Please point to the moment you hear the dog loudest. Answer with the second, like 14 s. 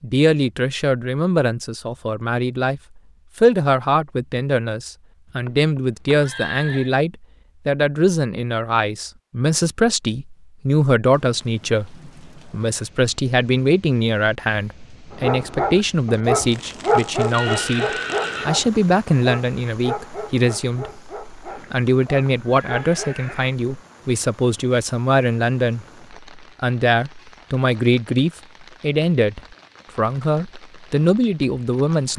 17 s.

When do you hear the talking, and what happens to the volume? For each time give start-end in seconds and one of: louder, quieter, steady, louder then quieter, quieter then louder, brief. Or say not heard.
0.0-32.1 steady.